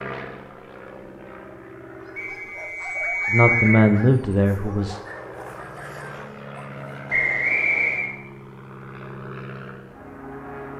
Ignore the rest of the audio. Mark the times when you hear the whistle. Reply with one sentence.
You can hear the whistle from 2.1 to 3.9 s and from 7.1 to 8.1 s.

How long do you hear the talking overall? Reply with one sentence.
You can hear the talking for 2 seconds altogether.